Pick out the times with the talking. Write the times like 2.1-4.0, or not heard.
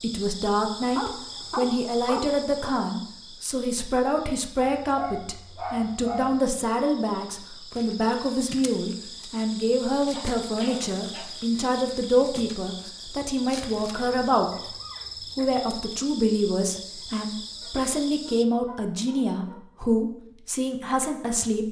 0.0-14.5, 15.3-21.6.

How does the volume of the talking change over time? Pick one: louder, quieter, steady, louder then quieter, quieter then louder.
steady.